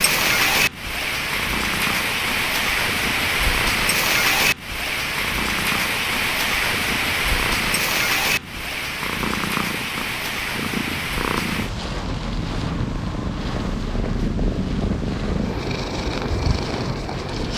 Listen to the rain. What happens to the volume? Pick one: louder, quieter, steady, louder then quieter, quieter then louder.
quieter.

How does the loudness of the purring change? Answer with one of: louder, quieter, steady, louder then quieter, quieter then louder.
louder.